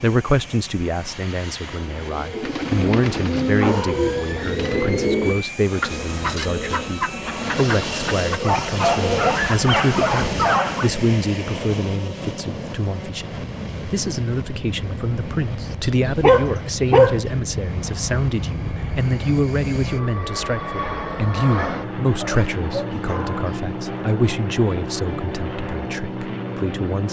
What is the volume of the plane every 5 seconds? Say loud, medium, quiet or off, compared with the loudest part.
medium, loud, loud, loud, loud, loud.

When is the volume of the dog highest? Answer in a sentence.
The loudest moment of the dog is at 17 seconds.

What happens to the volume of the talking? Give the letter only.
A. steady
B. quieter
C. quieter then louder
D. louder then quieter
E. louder
A.